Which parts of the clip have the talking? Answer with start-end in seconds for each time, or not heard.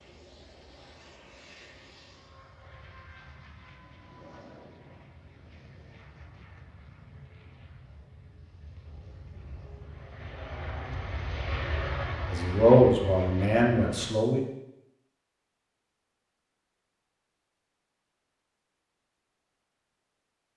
12.3-14.4.